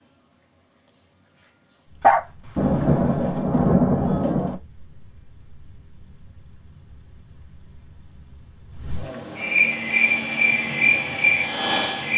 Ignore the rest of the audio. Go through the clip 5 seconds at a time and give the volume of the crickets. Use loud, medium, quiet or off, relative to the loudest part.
quiet, medium, loud.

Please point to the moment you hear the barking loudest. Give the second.
2 s.